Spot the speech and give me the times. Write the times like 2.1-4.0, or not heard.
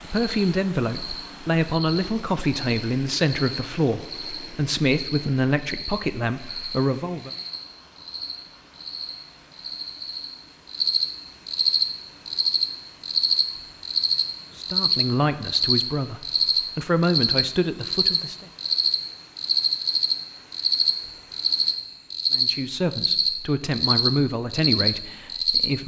0.0-7.3, 14.6-18.4, 22.3-25.8.